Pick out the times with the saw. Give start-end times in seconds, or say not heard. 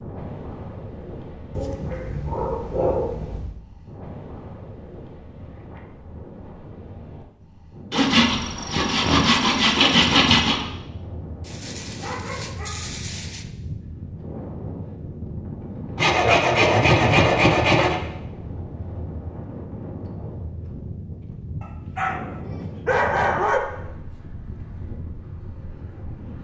7.9-10.6, 15.9-18.0.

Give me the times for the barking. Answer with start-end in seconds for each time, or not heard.
1.6-3.5, 11.4-13.4, 21.6-23.6.